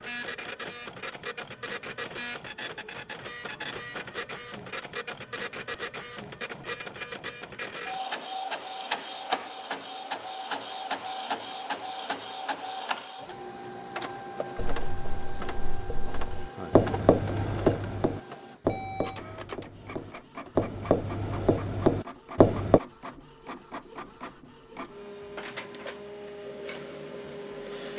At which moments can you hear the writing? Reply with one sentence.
You can hear the writing from 14.6 to 22.8 s.